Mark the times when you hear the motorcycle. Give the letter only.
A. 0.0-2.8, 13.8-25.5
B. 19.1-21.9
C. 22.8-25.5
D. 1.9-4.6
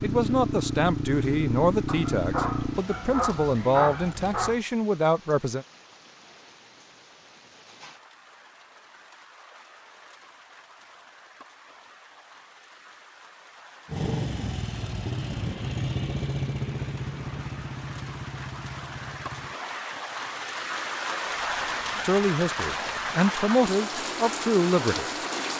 A.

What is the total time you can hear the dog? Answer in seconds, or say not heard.
3 s.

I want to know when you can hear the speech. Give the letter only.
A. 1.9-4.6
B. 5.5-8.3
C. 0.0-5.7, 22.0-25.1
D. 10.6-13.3
C.